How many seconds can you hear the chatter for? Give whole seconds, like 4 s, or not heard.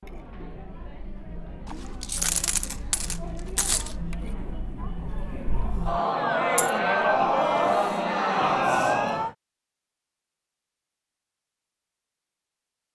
9 s.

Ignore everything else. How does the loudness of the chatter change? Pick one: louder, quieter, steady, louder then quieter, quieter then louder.
louder.